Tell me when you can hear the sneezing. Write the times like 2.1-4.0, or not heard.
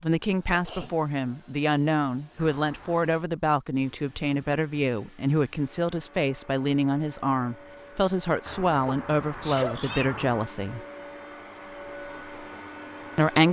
0.5-0.9, 8.8-9.8.